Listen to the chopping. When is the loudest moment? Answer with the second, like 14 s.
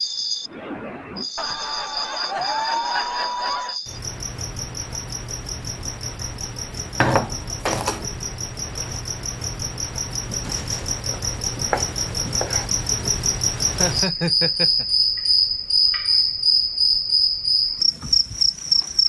7 s.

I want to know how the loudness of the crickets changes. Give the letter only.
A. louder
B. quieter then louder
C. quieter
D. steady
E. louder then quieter
A.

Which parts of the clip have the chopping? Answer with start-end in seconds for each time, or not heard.
7.0-8.1, 10.3-12.7.